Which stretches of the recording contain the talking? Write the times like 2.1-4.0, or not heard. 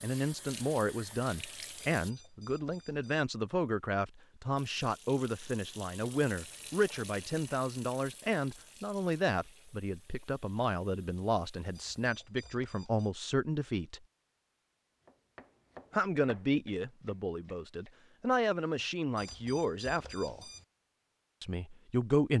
0.0-14.0, 15.9-20.4, 21.4-22.3.